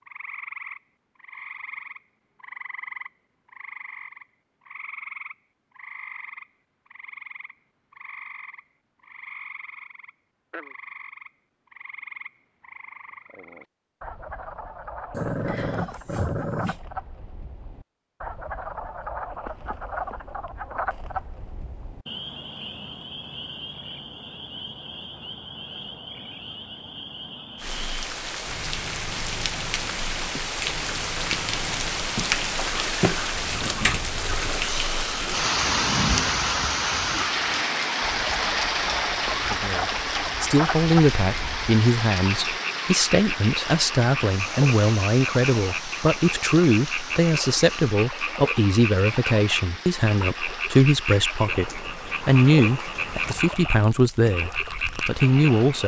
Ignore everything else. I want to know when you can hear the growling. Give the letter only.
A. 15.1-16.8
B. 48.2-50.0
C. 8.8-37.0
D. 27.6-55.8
A.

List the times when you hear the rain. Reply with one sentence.
The rain can be heard from 27.6 to 55.8 s.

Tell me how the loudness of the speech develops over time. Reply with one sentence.
The volume of the speech stays about the same.